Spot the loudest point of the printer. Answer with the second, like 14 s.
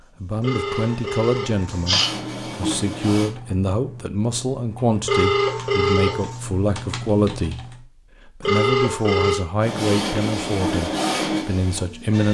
11 s.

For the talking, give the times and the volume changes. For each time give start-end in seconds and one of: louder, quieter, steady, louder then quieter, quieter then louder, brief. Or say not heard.
0.2-12.2 steady.